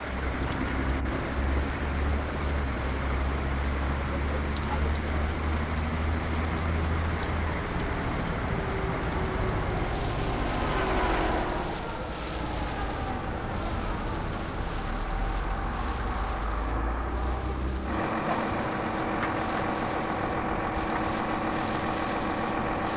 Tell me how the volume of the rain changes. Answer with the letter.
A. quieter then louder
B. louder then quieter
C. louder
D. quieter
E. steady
D.